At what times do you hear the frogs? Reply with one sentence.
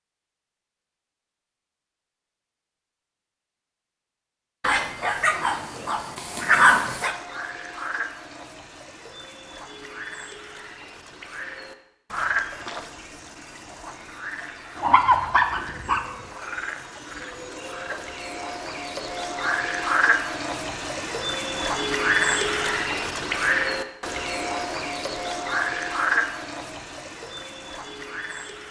The frogs can be heard from 6.2 to 28.6 s.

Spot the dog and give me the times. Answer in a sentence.
The dog can be heard from 4.6 to 7.2 s and from 14.8 to 16.1 s.